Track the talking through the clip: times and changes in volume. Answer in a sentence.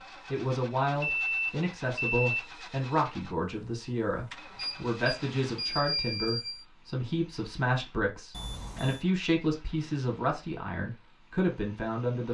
The talking can be heard from 0.3 to 12.2 s, at a steady volume.